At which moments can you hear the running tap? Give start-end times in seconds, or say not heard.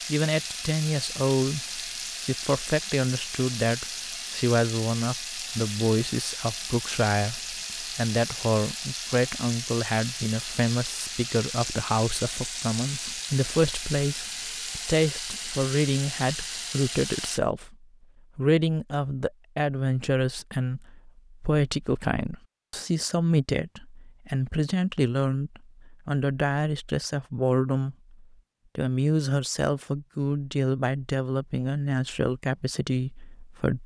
0.0-17.4.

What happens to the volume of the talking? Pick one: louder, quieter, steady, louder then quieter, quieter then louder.
steady.